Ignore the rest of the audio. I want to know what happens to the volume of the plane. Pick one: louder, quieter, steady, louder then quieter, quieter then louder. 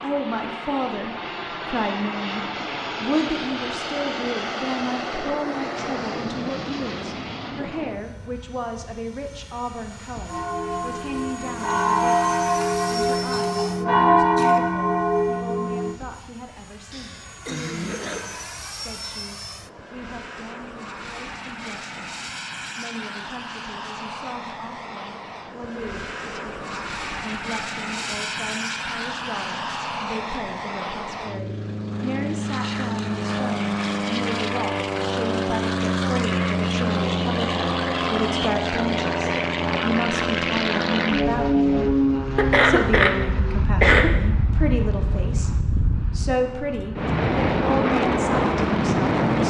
quieter then louder.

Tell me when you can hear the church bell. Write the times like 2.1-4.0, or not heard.
10.2-16.0.